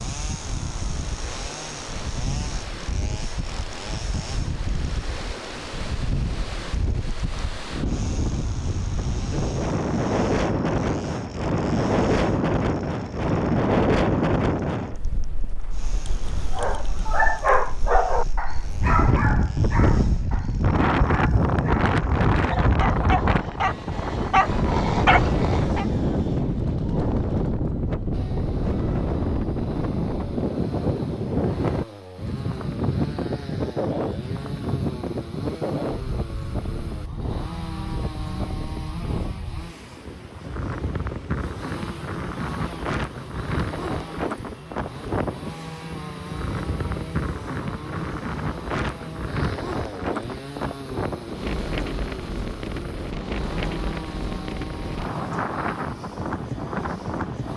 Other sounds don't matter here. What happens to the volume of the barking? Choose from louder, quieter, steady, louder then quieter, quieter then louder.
quieter then louder.